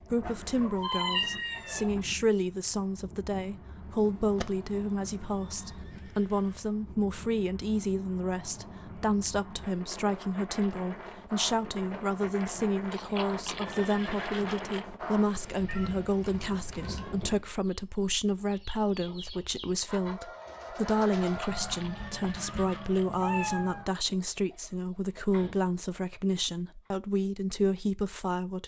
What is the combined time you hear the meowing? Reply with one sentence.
The meowing can be heard for 6 seconds in total.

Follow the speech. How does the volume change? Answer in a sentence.
The loudness of the speech stays about the same.